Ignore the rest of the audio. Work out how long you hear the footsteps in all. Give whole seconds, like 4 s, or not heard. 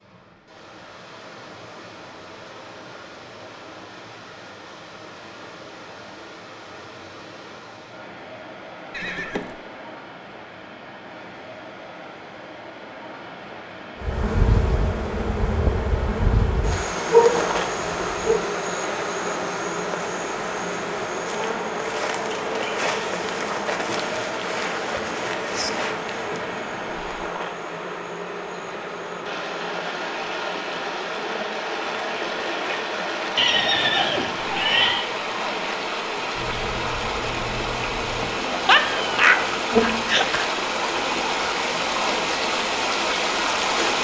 not heard.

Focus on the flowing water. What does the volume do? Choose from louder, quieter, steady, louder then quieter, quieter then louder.
louder.